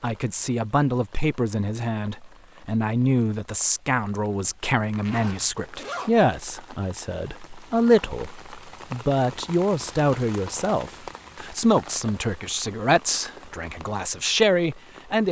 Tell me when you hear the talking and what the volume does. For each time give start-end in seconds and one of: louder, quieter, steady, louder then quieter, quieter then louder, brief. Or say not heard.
0.0-15.2 steady.